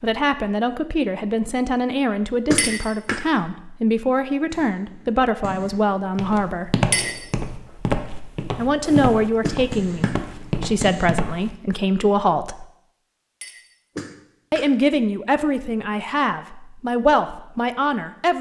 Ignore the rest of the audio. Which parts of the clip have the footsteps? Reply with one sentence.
You can hear the footsteps from 6.2 to 11.6 s.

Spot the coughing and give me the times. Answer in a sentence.
The coughing can be heard from 2.5 to 3.2 s, from 9.4 to 10.2 s and from 13.9 to 14.7 s.